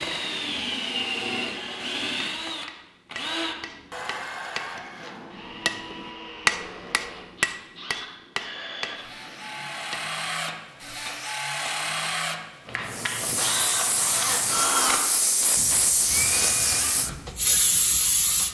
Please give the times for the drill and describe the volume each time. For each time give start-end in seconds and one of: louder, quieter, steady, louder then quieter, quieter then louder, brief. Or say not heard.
0.0-17.0 quieter then louder.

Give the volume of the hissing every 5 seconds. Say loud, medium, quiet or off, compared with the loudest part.
off, off, loud, loud.